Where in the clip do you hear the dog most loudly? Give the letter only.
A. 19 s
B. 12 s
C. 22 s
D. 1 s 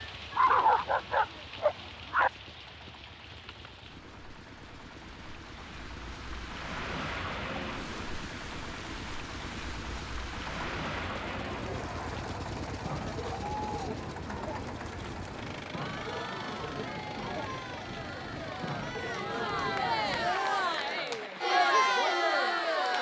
D.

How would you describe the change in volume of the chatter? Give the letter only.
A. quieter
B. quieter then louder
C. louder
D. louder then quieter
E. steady
C.